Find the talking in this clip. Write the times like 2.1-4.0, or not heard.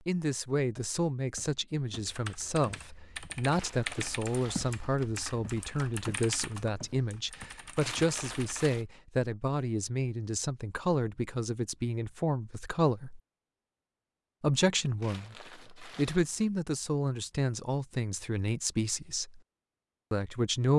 0.1-13.2, 14.4-19.4, 20.1-20.7.